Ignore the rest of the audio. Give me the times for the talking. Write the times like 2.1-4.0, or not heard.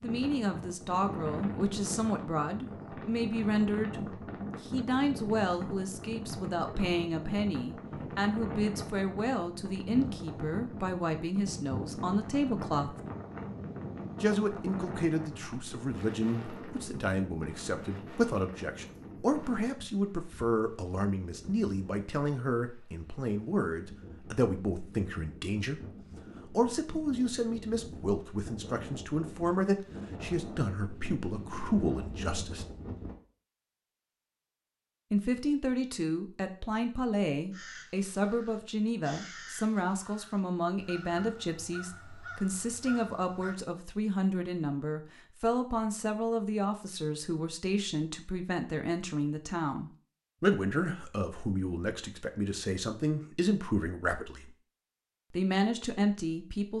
0.0-12.9, 14.2-25.8, 26.4-32.6, 35.1-54.5, 55.3-56.7.